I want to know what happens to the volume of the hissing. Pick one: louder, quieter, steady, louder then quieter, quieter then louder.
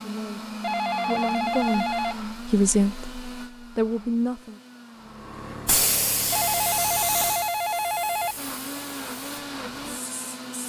quieter.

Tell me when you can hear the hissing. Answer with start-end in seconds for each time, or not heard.
5.1-10.6.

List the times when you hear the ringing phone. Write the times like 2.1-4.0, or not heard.
0.6-2.1, 6.3-8.3.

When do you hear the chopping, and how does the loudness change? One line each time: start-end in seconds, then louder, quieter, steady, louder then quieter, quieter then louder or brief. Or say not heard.
not heard.